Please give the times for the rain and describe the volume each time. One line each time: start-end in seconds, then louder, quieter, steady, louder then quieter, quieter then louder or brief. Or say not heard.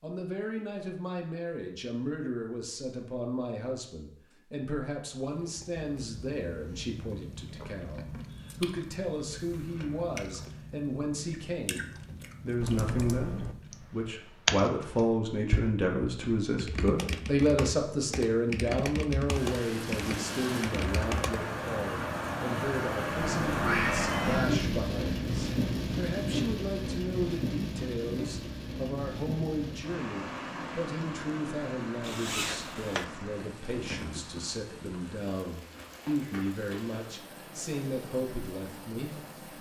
19.3-39.5 quieter.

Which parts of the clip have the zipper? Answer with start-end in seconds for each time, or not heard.
32.0-33.0.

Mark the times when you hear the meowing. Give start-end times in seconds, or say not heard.
23.2-24.8.